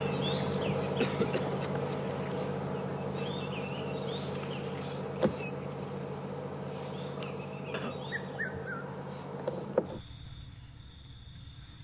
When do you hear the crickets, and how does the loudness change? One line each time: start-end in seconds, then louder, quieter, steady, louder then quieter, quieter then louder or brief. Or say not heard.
0.0-11.7 quieter.